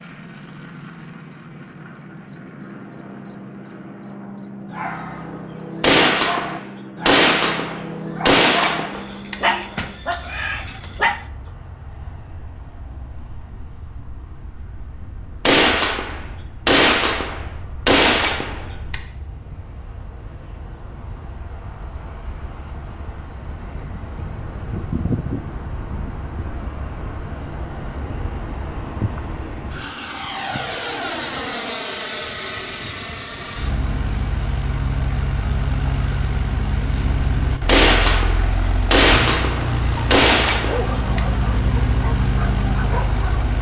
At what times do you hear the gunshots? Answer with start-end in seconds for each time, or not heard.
5.8-9.8, 15.4-18.9, 37.6-41.2.